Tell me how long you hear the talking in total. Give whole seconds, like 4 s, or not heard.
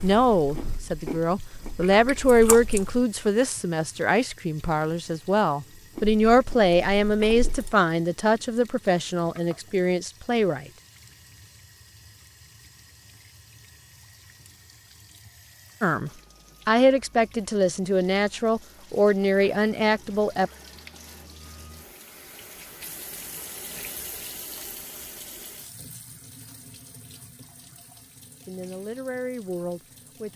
17 s.